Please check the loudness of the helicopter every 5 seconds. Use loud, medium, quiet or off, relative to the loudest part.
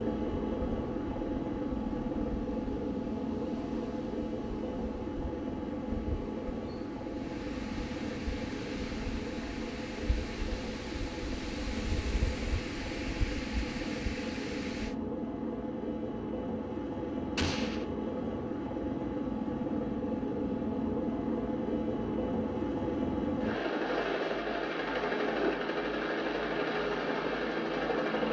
loud, medium, medium, loud, loud, loud.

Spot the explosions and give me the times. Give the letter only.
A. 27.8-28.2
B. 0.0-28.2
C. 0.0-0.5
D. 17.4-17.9
D.